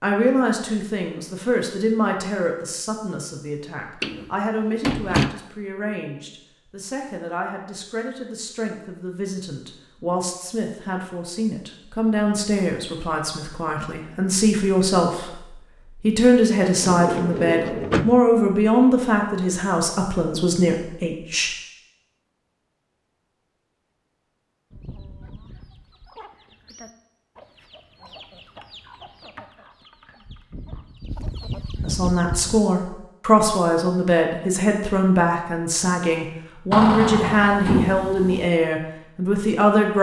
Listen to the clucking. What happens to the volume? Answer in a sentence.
The volume of the clucking goes up.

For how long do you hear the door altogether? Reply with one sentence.
You can hear the door for 5 seconds altogether.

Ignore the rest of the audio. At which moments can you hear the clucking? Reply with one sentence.
You can hear the clucking from 24.7 to 32.6 s.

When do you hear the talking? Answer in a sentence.
You can hear the talking from 0.0 to 21.5 s and from 31.8 to 39.9 s.